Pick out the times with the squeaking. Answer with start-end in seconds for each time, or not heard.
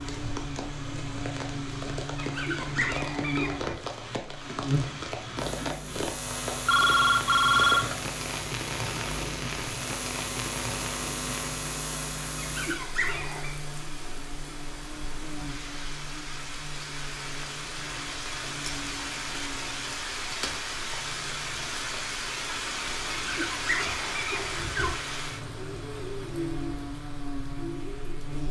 2.1-3.8, 12.3-13.5, 23.1-24.9.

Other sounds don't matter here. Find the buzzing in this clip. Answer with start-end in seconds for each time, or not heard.
0.0-28.4.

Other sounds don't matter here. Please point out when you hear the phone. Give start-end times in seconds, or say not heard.
6.7-7.9.